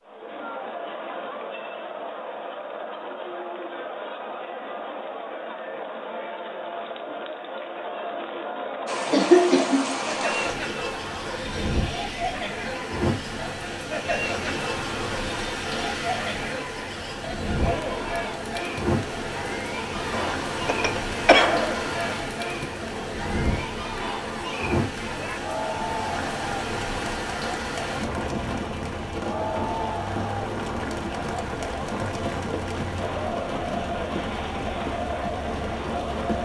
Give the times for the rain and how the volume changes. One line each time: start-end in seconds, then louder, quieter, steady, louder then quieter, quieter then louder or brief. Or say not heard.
8.8-36.4 steady.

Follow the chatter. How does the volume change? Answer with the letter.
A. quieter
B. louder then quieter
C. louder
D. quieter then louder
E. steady
E.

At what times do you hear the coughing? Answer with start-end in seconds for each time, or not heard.
9.1-9.9, 20.1-21.8.